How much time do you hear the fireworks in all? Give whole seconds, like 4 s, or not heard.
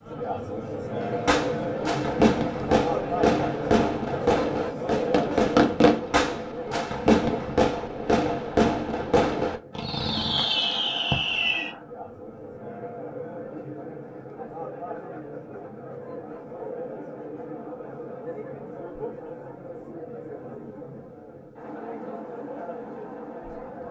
11 s.